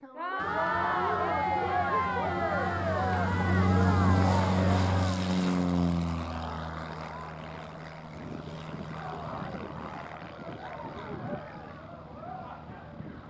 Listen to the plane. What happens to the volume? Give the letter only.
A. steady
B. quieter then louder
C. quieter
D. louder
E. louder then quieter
E.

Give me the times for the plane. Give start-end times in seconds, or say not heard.
0.4-13.2.